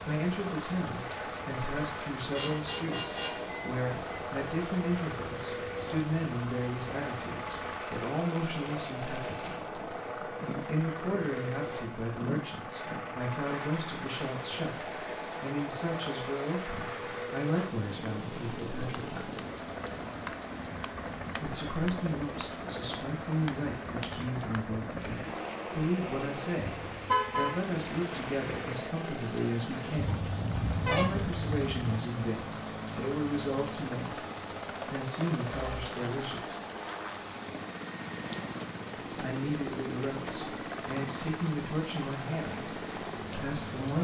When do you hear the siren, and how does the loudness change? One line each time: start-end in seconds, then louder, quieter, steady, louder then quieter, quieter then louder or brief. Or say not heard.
not heard.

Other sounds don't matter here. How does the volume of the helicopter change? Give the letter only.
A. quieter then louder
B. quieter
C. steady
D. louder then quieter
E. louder
C.